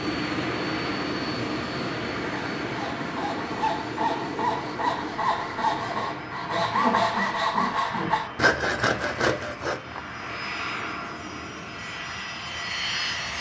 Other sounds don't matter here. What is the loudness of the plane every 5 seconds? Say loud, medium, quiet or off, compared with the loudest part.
loud, medium, loud.